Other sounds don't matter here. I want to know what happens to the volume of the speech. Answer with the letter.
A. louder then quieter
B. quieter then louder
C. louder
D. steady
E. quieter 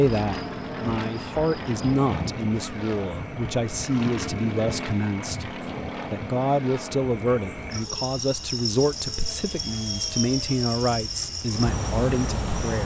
D.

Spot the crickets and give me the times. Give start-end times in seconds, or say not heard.
0.1-12.8.